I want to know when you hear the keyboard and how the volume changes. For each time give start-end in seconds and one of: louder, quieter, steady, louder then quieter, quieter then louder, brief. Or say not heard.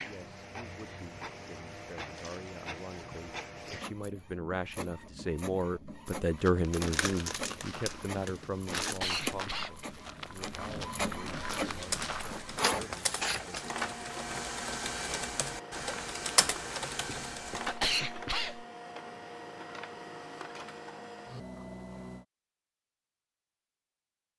11.7-17.8 louder.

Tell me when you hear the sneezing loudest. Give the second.
18 s.